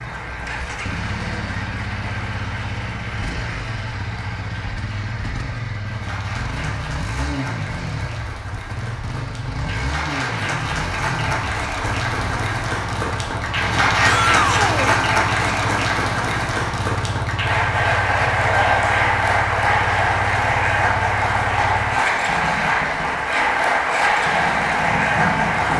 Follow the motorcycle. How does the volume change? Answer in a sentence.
The loudness of the motorcycle stays about the same.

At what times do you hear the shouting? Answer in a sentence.
The shouting can be heard from 14.0 to 14.9 s.